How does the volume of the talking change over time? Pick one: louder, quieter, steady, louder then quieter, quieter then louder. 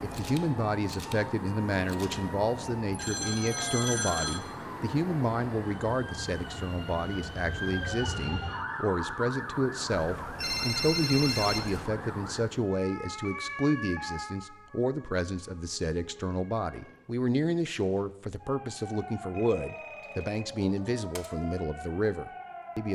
steady.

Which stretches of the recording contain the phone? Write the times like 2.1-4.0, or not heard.
2.9-4.4, 9.9-11.9, 19.4-21.3.